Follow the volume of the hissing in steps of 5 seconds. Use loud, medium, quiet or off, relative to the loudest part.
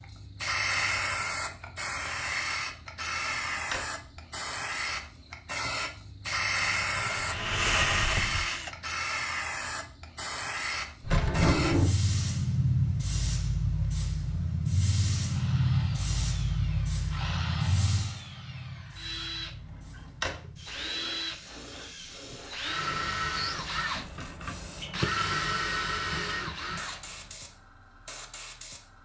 loud, loud, loud, loud, quiet, quiet.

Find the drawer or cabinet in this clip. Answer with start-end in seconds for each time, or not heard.
3.0-3.9, 11.0-11.9, 19.5-20.4.